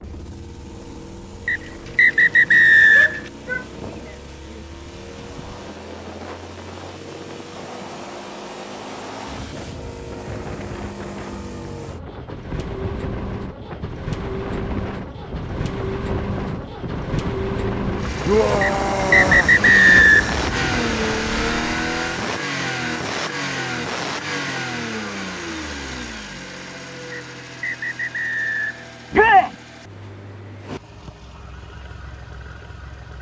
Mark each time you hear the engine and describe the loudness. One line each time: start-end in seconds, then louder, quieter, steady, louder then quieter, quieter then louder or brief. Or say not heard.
0.0-33.1 louder then quieter.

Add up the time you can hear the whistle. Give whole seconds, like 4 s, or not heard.
5 s.